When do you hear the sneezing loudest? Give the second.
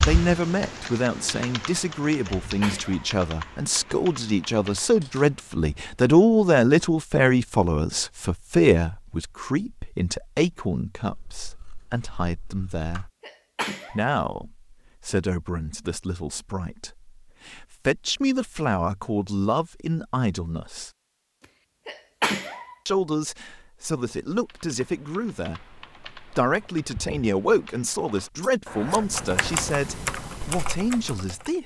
22 s.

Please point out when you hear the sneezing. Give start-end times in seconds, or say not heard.
2.2-3.1, 13.2-14.1, 21.9-22.8.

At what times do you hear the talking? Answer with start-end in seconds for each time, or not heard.
0.1-13.1, 13.9-20.9, 22.9-31.6.